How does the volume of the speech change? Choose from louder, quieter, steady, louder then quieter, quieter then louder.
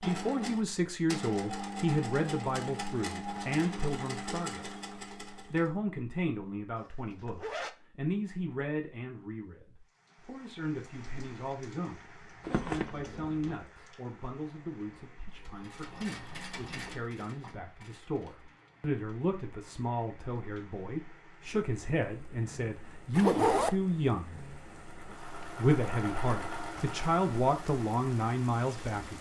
quieter then louder.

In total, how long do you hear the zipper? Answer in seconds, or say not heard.
3 s.